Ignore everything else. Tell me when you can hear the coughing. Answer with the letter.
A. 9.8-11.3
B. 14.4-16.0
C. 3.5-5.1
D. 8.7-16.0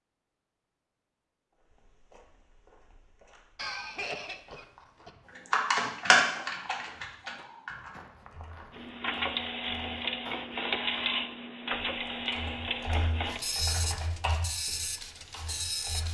C.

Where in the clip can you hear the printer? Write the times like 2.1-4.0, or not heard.
8.7-16.0.